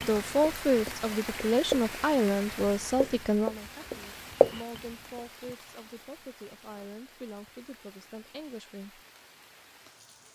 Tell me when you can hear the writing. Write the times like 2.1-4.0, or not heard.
0.0-5.2.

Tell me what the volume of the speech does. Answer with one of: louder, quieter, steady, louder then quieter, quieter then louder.
quieter.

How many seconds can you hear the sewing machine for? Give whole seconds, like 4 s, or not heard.
not heard.